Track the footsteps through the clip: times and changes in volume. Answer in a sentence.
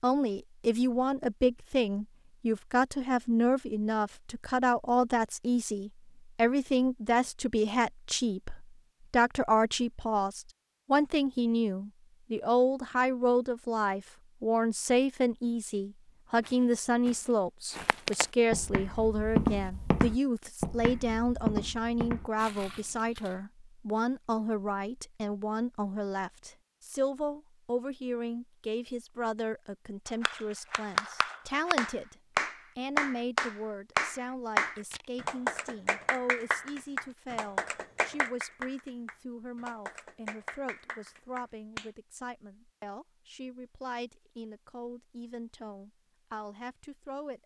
The footsteps can be heard from 16.4 to 23.4 s, getting louder then quieter.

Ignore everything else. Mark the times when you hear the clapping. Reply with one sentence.
You can hear the clapping from 30.1 to 41.9 s.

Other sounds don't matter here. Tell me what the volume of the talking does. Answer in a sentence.
The loudness of the talking goes down.